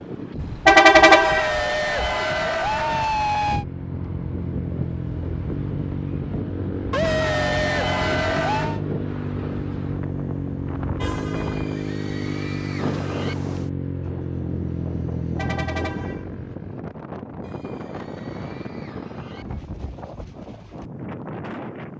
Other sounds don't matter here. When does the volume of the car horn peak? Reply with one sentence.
The loudest moment of the car horn is at 1 second.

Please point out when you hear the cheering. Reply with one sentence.
You can hear the cheering from 1.1 to 3.6 s, from 6.9 to 8.8 s, from 11.3 to 13.3 s and from 17.4 to 19.4 s.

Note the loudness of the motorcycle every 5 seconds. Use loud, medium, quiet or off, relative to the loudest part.
loud, loud, loud, loud, off.